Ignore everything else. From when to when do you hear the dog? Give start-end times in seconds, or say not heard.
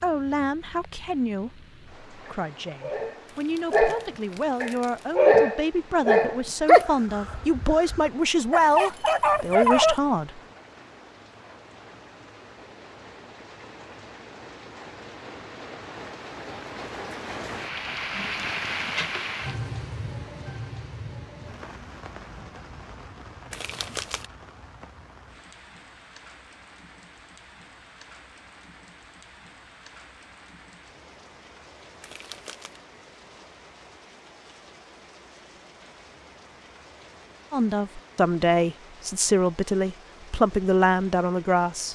2.2-9.9.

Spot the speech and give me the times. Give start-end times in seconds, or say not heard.
0.0-10.4, 37.5-41.9.